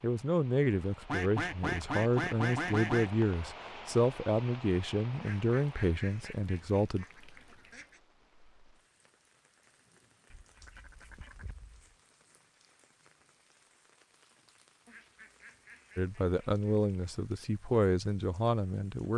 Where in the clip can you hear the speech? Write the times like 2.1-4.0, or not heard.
0.0-7.0, 15.9-19.1.